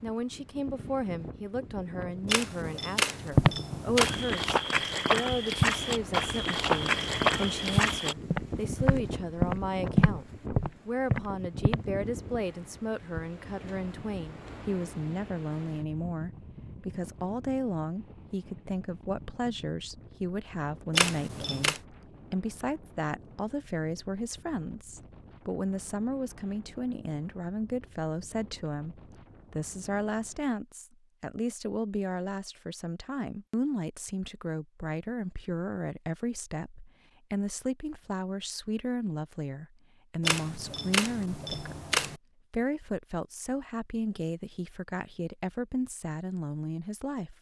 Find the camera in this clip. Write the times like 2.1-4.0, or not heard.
2.2-4.2, 20.9-21.8, 40.2-42.2.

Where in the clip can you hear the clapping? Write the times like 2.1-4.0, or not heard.
not heard.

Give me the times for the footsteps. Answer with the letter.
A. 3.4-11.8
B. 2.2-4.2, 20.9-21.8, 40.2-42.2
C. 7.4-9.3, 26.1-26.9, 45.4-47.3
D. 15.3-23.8
A.